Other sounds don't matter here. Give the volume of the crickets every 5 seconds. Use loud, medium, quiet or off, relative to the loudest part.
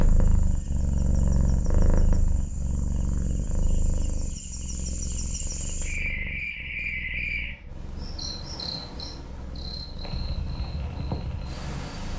medium, loud, loud.